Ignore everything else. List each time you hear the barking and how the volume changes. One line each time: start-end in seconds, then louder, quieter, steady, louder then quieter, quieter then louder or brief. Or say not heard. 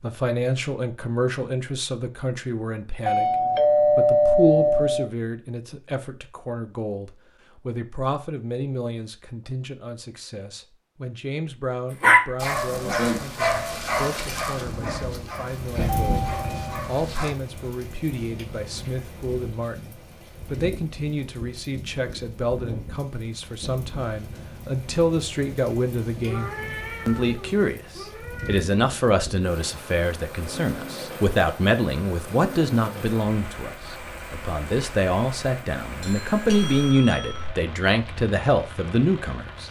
12.0-17.4 quieter.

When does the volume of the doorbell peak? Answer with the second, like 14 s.
4 s.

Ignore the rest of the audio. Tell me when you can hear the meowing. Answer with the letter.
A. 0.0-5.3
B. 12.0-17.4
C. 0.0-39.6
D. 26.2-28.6
D.